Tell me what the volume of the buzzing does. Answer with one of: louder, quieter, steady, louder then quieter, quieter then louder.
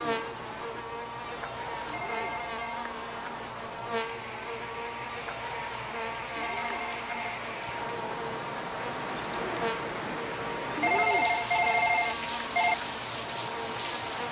steady.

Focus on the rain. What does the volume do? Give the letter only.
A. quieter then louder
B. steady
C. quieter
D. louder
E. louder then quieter
D.